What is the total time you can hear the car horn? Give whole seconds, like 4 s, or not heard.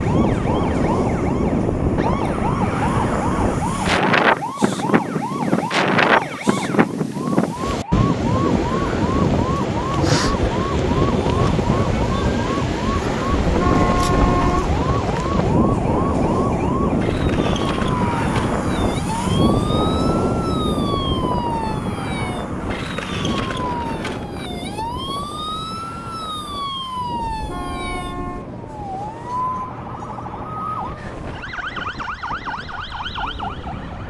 3 s.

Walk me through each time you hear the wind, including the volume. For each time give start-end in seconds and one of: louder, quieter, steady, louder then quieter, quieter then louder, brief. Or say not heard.
0.0-34.0 quieter.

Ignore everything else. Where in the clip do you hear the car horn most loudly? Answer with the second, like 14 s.
14 s.